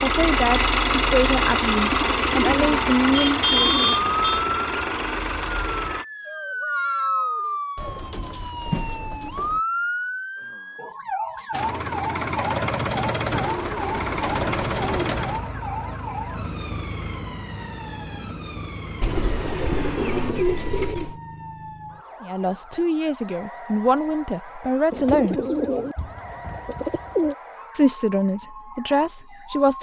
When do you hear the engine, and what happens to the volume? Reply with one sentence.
You can hear the engine from 0.0 to 6.0 s, getting quieter; and from 11.5 to 20.4 s, getting quieter.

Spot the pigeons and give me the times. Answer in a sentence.
The pigeons can be heard from 1.8 to 4.4 s, from 7.8 to 9.6 s, from 13.3 to 15.4 s, from 19.0 to 21.2 s and from 24.9 to 27.4 s.